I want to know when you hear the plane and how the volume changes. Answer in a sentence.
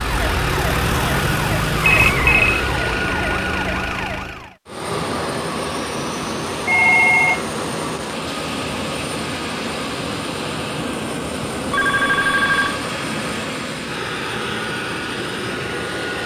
The plane can be heard from 0.0 to 16.2 s, at a steady volume.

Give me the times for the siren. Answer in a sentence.
The siren can be heard from 0.0 to 4.5 s.